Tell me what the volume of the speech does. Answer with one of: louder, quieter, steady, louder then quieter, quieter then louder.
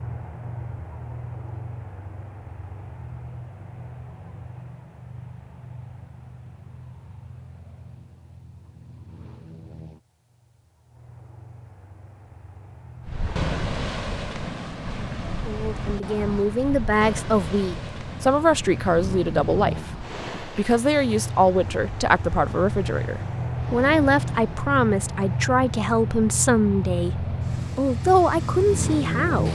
steady.